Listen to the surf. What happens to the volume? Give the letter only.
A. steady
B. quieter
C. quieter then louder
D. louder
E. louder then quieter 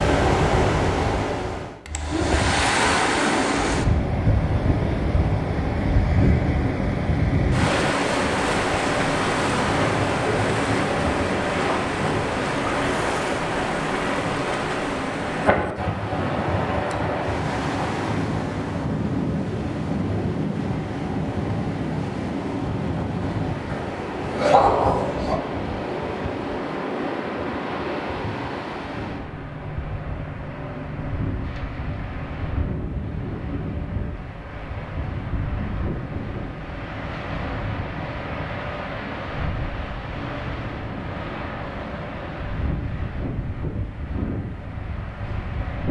B.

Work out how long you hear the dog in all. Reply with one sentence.
The dog can be heard for 2 seconds in total.